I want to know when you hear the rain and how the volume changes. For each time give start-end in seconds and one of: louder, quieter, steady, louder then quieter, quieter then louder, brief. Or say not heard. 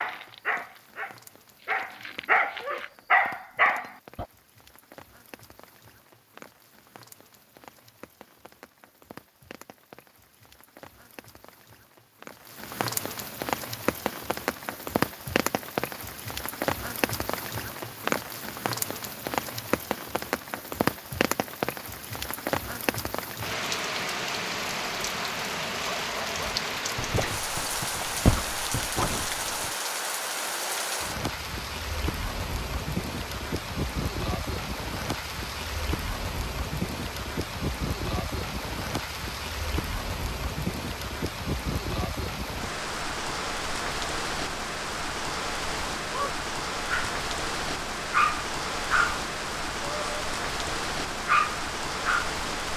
0.0-52.7 louder.